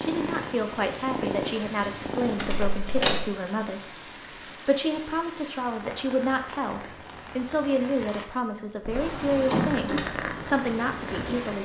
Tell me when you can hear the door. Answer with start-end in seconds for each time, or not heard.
2.4-3.2, 8.8-10.0.